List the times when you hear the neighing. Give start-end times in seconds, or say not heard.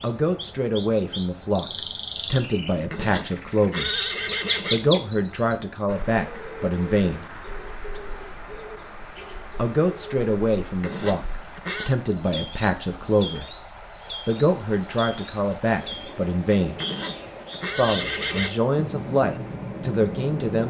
2.9-4.9, 10.8-11.9, 16.8-18.5.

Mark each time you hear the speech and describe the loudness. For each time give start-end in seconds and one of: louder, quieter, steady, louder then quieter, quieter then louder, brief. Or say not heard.
0.0-4.0 quieter then louder
4.7-7.2 brief
9.6-13.6 quieter then louder
14.2-16.8 brief
17.8-20.6 brief.